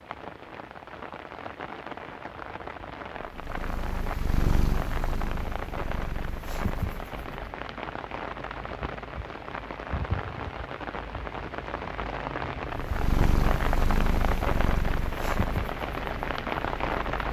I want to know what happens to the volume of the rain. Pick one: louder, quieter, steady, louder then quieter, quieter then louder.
louder.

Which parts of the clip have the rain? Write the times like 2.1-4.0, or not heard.
0.0-17.2.